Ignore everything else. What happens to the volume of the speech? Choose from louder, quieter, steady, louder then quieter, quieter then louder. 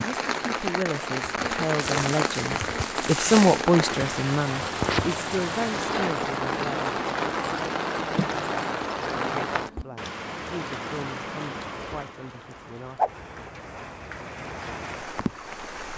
louder then quieter.